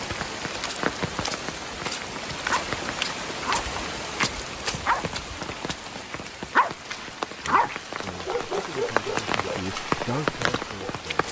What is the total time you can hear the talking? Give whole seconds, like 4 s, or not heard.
4 s.